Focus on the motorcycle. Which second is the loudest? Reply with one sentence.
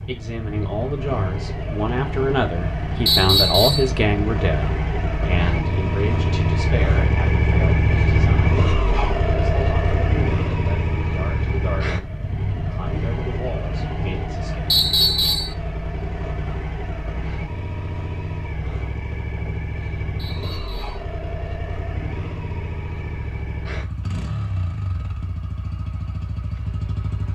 The volume of the motorcycle peaks at 8 seconds.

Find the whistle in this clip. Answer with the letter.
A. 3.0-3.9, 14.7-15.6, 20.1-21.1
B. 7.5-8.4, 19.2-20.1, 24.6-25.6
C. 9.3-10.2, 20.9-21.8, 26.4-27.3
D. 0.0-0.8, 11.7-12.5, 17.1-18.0
A.